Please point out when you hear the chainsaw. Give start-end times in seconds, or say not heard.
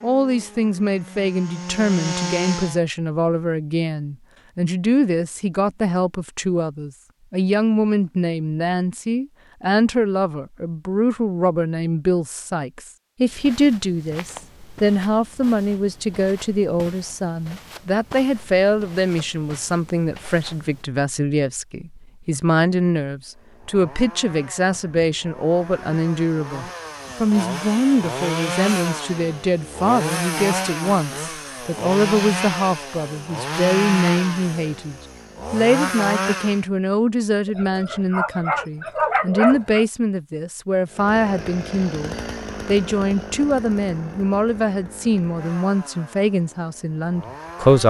0.0-2.8, 23.2-36.6, 40.9-47.8.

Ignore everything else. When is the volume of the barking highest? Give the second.
39 s.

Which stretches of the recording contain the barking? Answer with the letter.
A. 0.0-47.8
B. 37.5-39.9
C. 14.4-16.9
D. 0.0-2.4
B.